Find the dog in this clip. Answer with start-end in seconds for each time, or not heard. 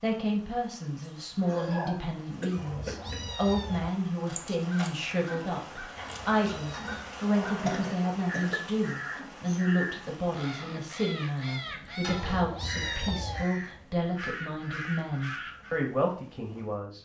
not heard.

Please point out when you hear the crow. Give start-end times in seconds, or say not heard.
4.2-15.8.